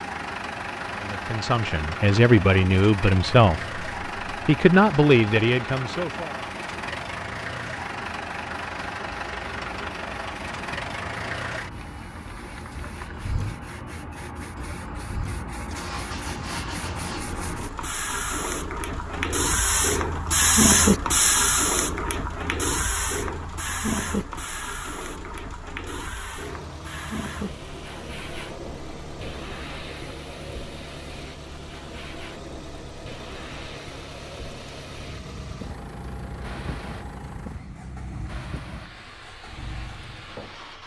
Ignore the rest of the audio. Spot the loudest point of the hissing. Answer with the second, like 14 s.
21 s.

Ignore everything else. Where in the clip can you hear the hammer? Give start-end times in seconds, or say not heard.
not heard.